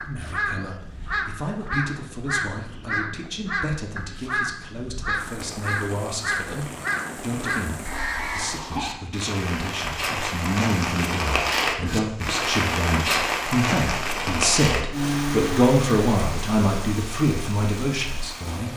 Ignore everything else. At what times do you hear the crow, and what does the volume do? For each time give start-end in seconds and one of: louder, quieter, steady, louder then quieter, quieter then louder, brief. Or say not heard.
0.0-8.6 steady.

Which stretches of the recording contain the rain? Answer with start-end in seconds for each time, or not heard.
5.2-18.7.